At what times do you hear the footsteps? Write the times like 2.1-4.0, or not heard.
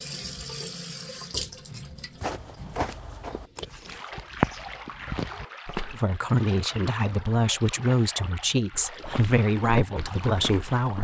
2.2-6.0, 8.7-10.9.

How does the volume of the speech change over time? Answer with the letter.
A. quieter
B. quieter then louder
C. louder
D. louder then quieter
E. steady
E.